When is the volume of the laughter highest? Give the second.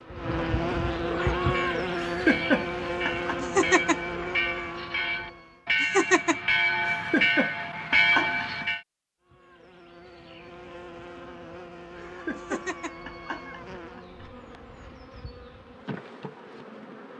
2 s.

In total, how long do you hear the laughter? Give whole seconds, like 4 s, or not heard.
6 s.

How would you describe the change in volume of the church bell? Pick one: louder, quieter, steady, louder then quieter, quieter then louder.
louder.